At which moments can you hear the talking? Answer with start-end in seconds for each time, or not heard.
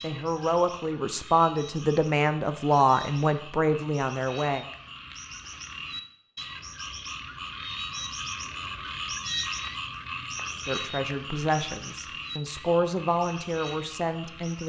0.0-4.7, 10.7-14.6.